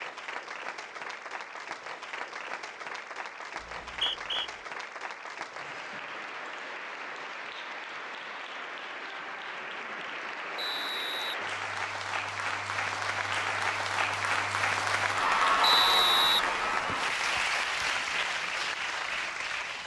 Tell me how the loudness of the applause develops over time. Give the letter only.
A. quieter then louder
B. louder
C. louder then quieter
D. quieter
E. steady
B.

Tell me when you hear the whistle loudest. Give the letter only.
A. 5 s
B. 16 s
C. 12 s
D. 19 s
B.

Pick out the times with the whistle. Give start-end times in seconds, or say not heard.
3.6-4.5, 10.6-11.3, 15.6-17.1.